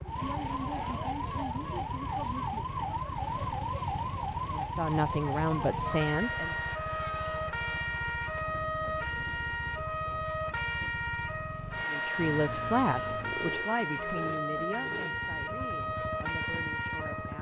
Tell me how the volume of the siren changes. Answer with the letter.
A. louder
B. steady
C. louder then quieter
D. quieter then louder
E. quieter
B.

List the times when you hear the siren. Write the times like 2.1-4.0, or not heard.
0.0-17.3.